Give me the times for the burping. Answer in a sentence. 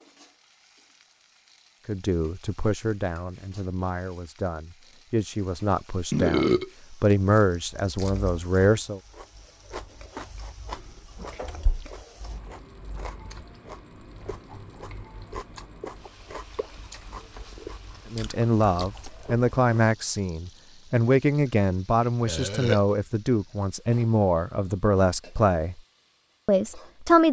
You can hear the burping from 6.1 to 6.7 s, from 10.8 to 11.9 s and from 22.2 to 22.8 s.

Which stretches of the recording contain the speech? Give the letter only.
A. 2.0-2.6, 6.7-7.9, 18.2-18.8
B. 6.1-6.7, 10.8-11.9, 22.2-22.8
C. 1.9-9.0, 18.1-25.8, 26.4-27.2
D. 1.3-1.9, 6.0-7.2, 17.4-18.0
C.